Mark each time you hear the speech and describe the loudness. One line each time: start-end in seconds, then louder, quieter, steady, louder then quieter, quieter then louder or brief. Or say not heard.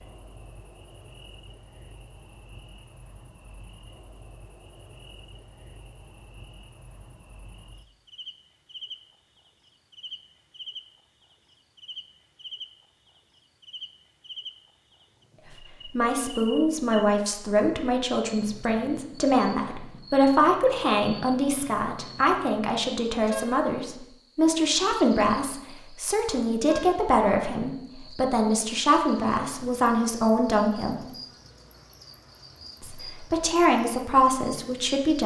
15.5-31.1 steady
32.8-35.2 brief.